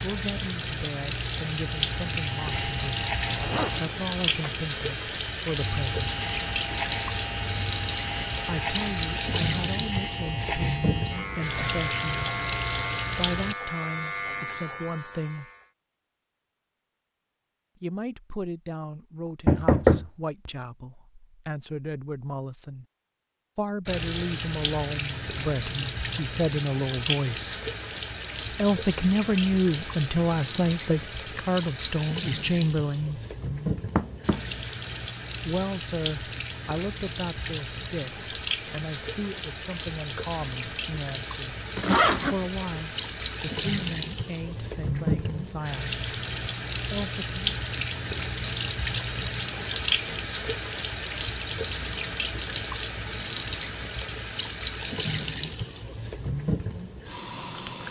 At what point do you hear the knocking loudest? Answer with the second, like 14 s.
20 s.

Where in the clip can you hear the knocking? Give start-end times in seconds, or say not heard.
19.4-20.5, 34.0-34.6.